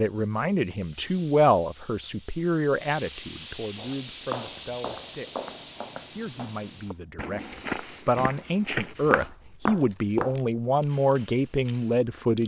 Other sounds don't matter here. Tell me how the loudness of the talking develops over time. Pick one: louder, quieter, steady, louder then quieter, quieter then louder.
quieter then louder.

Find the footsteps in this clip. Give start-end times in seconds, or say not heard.
3.8-10.3.